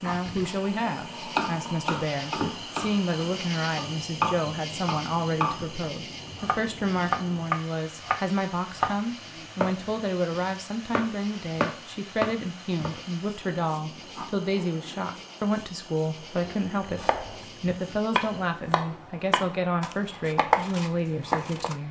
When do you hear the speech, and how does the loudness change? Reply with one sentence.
The speech can be heard from 0.0 to 21.8 s, at a steady volume.